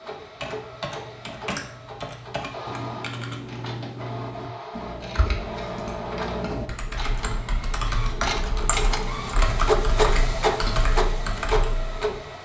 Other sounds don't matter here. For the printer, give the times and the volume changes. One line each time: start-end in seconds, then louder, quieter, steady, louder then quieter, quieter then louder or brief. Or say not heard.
0.0-12.3 louder.